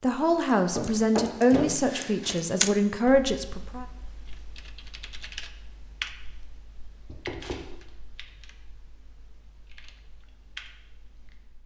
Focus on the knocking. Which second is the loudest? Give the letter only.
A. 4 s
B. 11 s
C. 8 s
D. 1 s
D.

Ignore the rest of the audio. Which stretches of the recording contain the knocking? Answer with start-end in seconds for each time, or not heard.
0.8-2.1, 7.0-7.8.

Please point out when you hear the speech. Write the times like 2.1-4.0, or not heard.
0.0-3.9.